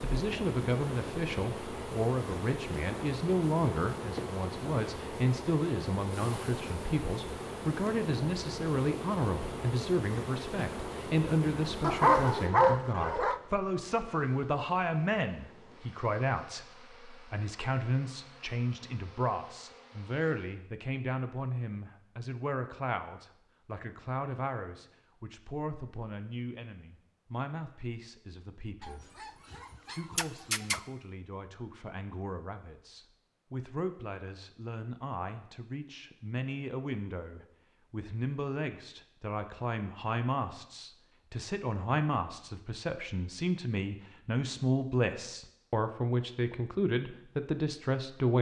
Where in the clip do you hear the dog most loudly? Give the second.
12 s.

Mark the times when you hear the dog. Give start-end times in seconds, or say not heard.
11.8-13.4, 28.8-30.8.